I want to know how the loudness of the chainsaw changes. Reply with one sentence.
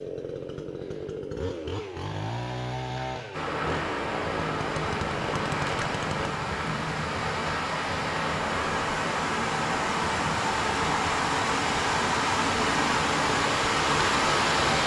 The loudness of the chainsaw stays about the same.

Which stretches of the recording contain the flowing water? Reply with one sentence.
The flowing water can be heard from 3.3 to 14.8 s.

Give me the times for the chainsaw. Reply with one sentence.
You can hear the chainsaw from 0.0 to 6.3 s.